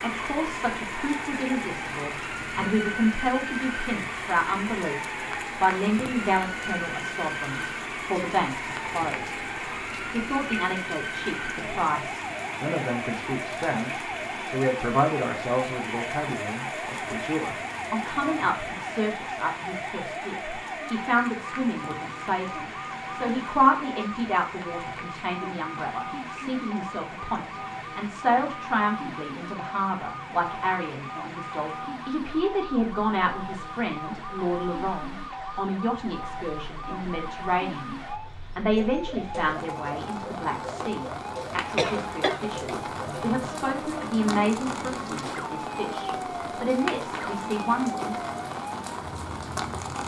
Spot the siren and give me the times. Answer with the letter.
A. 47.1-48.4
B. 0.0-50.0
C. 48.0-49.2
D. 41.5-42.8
B.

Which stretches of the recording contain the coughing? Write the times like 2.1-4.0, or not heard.
41.5-42.8.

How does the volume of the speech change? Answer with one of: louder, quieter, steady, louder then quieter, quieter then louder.
steady.